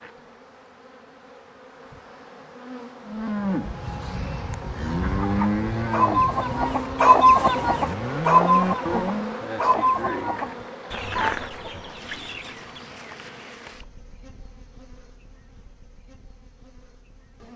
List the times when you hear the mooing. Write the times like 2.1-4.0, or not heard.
3.0-9.4.